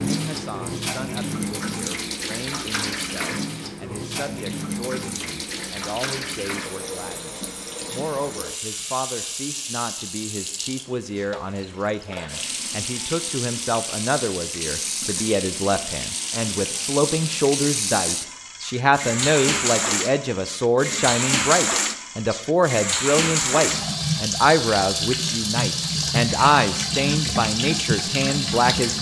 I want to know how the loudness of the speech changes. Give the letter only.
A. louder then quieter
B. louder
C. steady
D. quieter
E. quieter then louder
B.